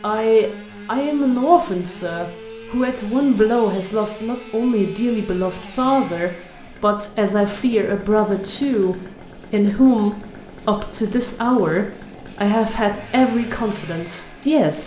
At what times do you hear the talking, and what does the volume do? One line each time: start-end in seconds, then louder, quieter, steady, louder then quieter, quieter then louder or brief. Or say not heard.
0.0-14.8 steady.